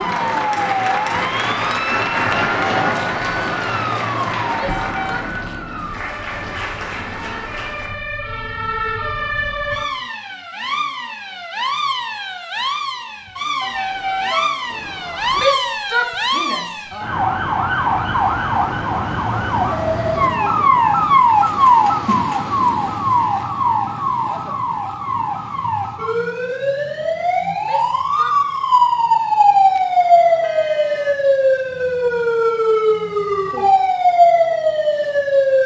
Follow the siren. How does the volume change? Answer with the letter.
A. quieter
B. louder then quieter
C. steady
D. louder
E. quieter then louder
D.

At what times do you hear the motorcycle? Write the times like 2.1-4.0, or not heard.
not heard.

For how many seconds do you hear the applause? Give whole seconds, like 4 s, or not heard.
8 s.